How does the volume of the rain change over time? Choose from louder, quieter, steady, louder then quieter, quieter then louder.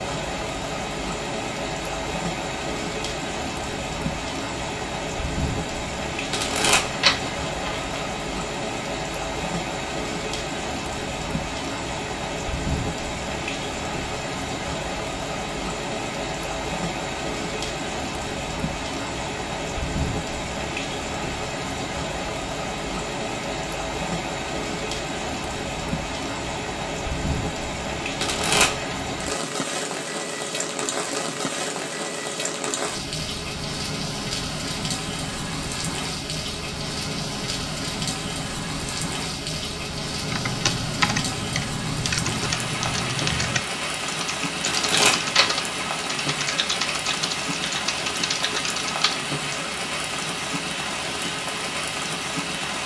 steady.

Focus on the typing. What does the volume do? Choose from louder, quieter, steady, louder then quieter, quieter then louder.
steady.